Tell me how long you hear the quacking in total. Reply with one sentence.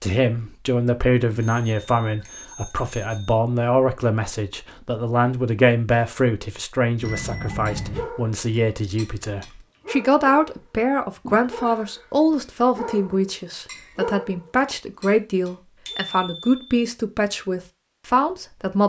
You can't hear the quacking here.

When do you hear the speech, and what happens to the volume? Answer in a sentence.
You can hear the speech from 0.0 to 18.8 s, at a steady volume.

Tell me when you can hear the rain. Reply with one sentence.
You can't hear the rain here.